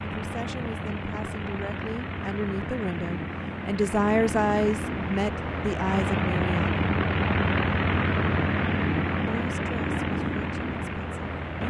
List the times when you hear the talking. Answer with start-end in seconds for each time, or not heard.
0.0-6.8, 9.2-11.6.